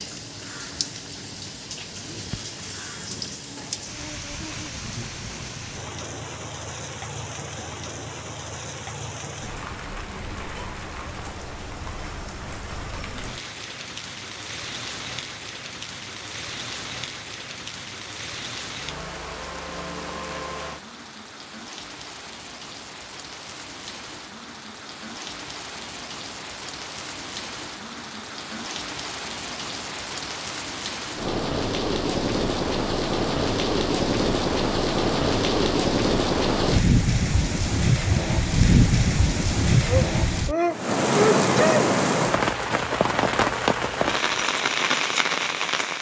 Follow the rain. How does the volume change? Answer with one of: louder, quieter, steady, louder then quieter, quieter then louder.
louder.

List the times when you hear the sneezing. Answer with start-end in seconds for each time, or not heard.
39.8-41.9.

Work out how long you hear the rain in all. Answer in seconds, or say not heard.
46 s.